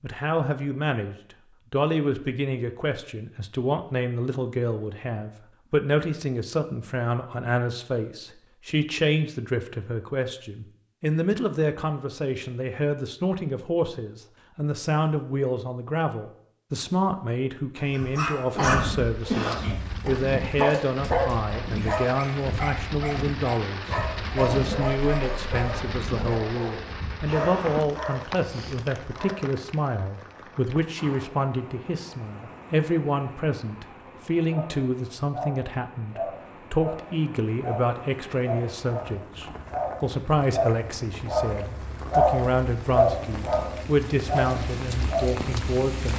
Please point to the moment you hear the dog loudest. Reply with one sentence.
The volume of the dog peaks at 42 seconds.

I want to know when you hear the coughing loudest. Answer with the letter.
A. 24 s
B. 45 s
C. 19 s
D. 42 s
C.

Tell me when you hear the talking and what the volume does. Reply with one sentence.
You can hear the talking from 0.0 to 46.1 s, at a steady volume.